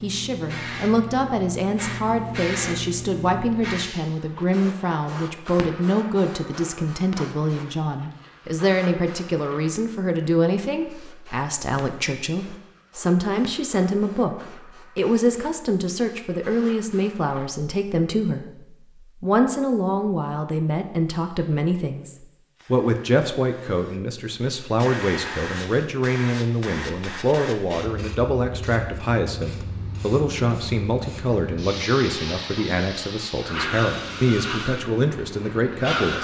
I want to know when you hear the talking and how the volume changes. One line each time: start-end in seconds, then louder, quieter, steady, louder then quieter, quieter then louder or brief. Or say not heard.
0.0-36.1 steady.